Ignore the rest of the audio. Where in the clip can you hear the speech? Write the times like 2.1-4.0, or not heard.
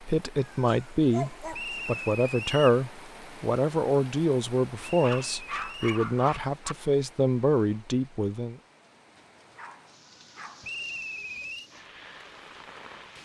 0.0-8.6.